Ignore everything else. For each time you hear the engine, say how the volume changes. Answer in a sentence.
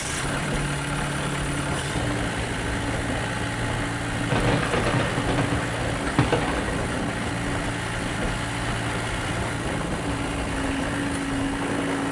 You can hear the engine from 0.0 to 12.0 s, at a steady volume.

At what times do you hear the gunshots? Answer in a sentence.
You can hear the gunshots from 4.2 to 6.8 s.